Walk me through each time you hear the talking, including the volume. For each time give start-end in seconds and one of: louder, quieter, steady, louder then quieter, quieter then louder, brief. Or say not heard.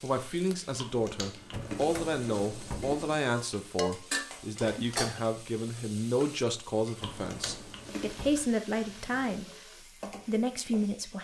0.0-9.4 steady
10.2-11.1 brief.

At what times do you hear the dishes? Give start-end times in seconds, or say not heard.
3.3-5.2.